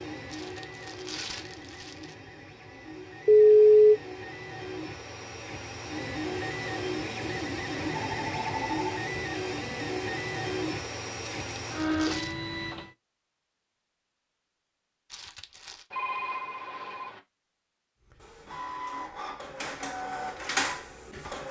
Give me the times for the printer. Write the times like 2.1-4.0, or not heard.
0.0-12.9, 18.1-21.4.